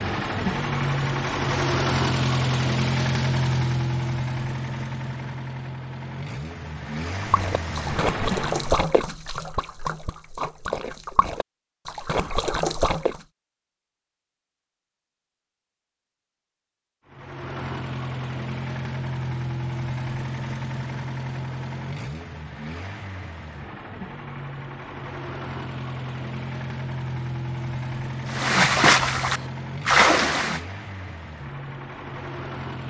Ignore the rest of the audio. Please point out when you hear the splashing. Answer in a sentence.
You can hear the splashing from 7.2 to 13.2 s and from 28.2 to 30.6 s.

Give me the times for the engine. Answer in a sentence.
The engine can be heard from 0.0 to 8.8 s and from 17.1 to 32.8 s.